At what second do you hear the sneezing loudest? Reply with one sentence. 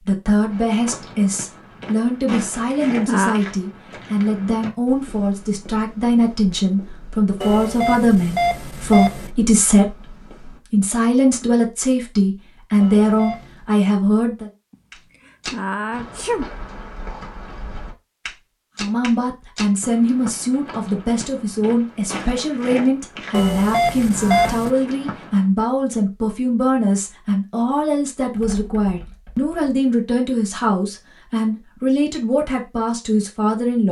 The volume of the sneezing peaks at 3 seconds.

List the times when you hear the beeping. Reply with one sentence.
The beeping can be heard from 7.4 to 9.3 s, from 12.8 to 13.7 s and from 23.3 to 24.7 s.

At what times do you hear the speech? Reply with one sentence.
You can hear the speech from 0.0 to 14.5 s and from 18.8 to 33.8 s.